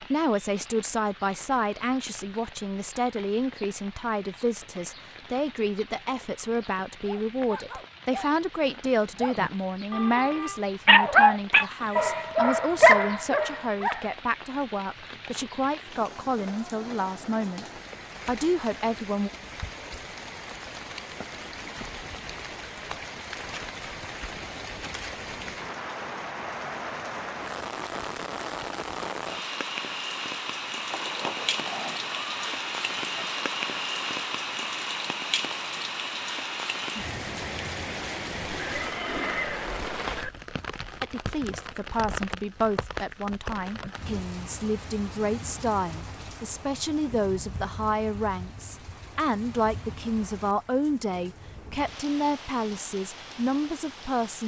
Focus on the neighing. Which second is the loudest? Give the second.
39 s.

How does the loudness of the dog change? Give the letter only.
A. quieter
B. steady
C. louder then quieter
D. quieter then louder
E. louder
E.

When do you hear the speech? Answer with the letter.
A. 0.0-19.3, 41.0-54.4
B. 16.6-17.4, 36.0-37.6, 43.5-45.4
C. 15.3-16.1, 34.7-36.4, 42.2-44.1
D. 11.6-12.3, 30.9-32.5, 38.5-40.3
A.